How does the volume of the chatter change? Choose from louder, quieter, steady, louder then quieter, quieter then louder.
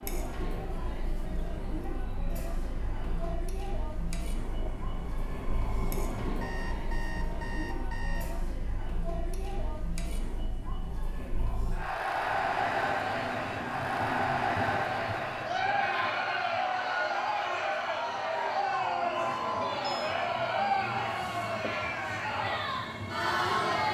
louder.